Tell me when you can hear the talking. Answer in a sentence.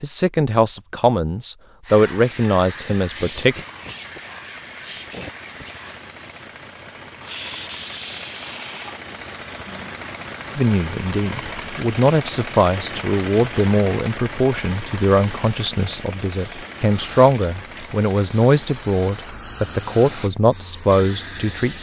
You can hear the talking from 0.0 to 3.5 s and from 10.6 to 21.7 s.